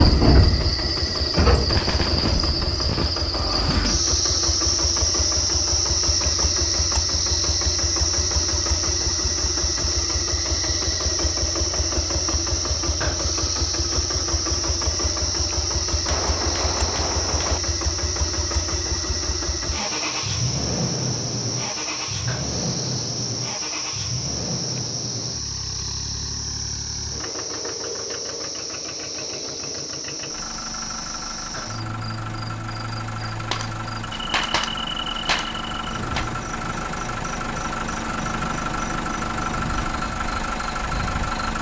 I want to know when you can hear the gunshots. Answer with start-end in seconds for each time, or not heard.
1.6-3.2, 16.1-17.6, 33.2-36.2.